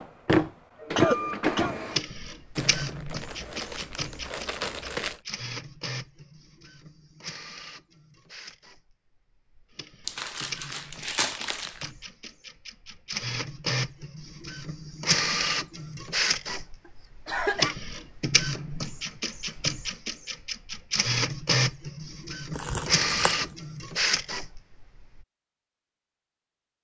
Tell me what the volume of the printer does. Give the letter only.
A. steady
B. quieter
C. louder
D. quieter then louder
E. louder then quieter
D.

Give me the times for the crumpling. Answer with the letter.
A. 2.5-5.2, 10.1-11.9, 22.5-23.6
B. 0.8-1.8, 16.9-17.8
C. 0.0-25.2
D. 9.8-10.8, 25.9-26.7
A.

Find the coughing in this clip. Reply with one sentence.
The coughing can be heard from 0.8 to 1.8 s and from 16.9 to 17.8 s.